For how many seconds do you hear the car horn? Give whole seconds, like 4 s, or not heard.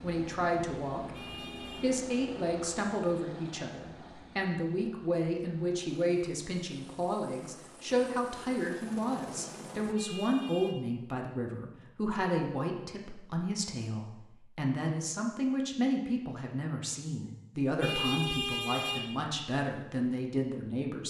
3 s.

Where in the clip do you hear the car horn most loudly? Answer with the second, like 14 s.
18 s.